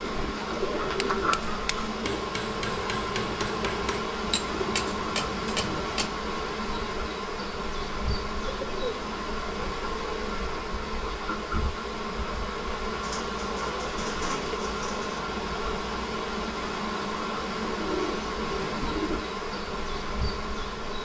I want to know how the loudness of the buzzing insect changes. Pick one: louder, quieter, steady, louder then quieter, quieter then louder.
steady.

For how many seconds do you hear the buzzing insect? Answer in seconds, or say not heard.
21 s.